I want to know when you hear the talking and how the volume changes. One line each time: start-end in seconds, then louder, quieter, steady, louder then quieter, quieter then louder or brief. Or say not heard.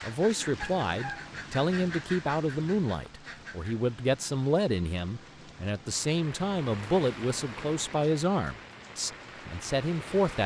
0.0-10.4 steady.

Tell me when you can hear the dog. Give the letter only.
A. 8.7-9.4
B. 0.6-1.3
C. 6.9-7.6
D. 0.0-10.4
B.